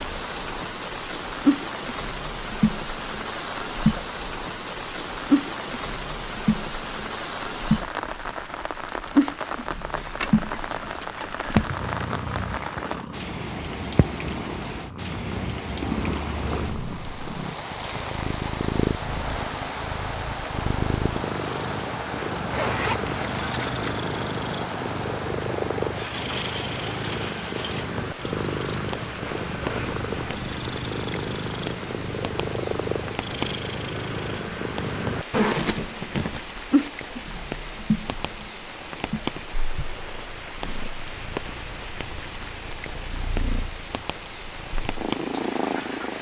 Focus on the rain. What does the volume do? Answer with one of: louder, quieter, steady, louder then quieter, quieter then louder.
steady.